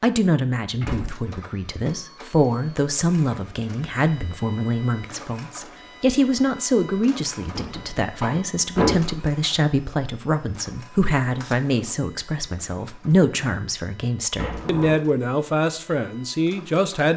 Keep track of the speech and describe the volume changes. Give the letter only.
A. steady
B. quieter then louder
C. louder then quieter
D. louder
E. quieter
A.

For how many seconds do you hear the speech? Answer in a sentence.
The speech can be heard for 17 seconds in total.